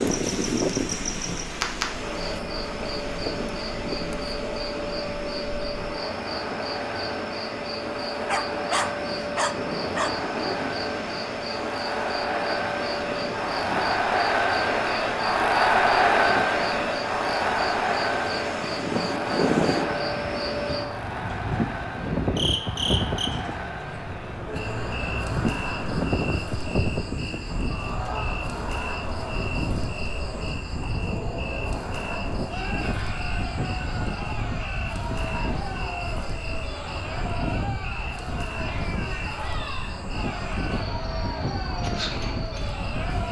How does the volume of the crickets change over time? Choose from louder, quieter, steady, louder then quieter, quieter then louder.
quieter.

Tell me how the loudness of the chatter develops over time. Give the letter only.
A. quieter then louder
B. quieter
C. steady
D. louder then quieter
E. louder
D.